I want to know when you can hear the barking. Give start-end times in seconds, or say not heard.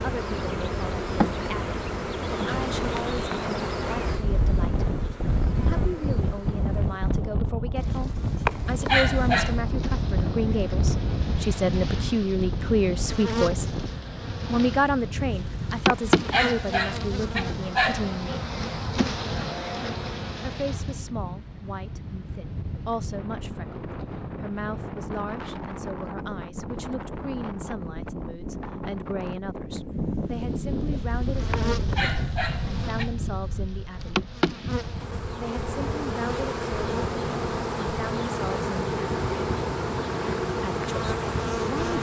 7.8-9.6, 15.2-18.1, 30.8-33.1.